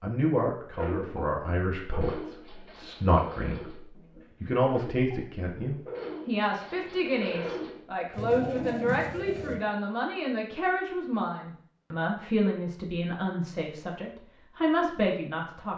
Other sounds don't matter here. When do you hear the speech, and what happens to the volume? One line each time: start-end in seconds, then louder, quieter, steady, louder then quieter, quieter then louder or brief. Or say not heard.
0.0-15.7 steady.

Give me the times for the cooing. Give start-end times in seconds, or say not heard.
0.8-9.6.